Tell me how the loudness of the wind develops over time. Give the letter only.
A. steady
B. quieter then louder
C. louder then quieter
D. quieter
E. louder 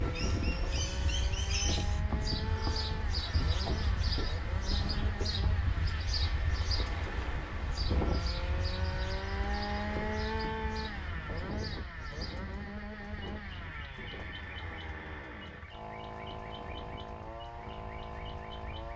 D.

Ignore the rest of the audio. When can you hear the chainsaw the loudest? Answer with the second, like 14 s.
10 s.